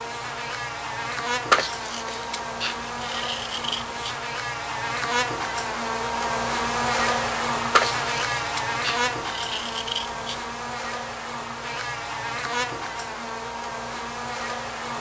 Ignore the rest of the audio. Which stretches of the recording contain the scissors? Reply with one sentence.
You can hear the scissors from 1.5 to 4.2 s and from 7.8 to 10.4 s.